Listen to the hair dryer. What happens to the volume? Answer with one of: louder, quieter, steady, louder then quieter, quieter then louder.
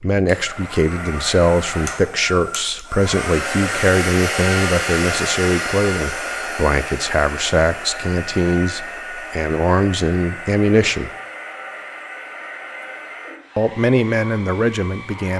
louder then quieter.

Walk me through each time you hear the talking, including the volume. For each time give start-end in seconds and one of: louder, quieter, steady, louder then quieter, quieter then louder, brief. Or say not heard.
0.0-11.1 steady
13.6-15.3 brief.